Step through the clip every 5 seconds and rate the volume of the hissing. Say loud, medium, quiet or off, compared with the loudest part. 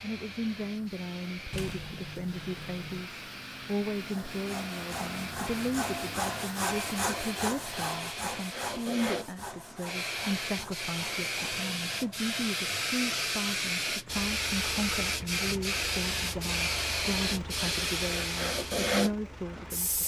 quiet, medium, loud, loud.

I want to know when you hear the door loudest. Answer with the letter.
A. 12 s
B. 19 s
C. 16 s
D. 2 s
D.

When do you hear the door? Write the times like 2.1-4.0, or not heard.
1.5-3.0.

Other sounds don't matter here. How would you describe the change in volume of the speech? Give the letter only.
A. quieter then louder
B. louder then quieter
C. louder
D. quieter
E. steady
E.